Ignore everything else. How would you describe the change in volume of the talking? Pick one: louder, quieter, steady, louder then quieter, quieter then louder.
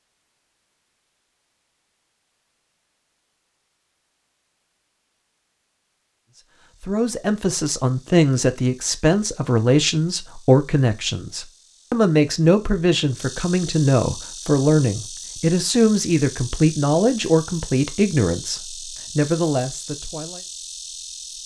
steady.